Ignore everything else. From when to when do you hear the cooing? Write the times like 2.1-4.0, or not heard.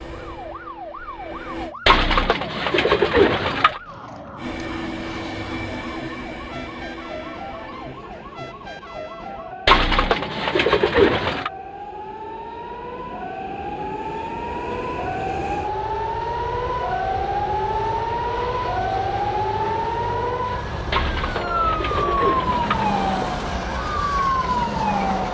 1.9-3.8, 9.7-11.5, 20.9-23.3.